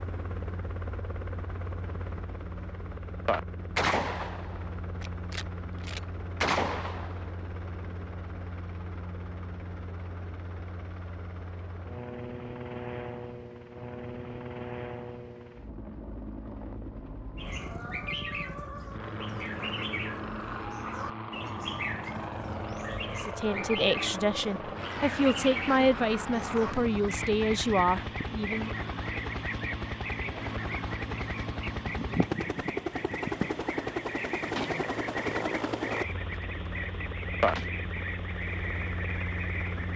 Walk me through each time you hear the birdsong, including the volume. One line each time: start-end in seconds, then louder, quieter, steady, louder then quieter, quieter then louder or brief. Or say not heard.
17.4-39.9 steady.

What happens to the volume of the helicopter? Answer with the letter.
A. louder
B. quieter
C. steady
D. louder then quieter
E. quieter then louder
A.